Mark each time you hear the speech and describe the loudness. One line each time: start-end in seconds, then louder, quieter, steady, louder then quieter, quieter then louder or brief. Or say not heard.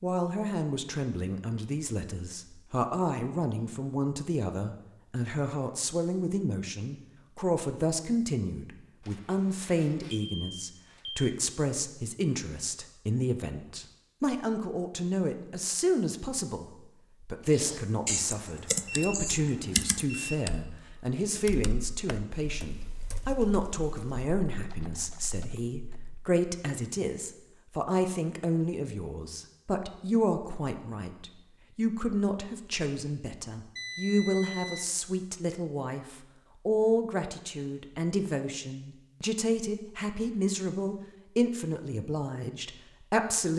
0.0-43.5 steady.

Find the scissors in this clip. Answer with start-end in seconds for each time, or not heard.
not heard.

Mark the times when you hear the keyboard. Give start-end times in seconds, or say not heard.
17.4-26.1.